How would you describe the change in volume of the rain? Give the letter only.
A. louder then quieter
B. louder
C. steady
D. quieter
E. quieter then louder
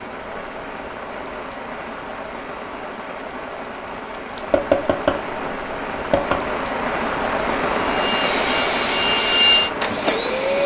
B.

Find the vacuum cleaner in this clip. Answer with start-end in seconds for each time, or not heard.
7.8-10.6.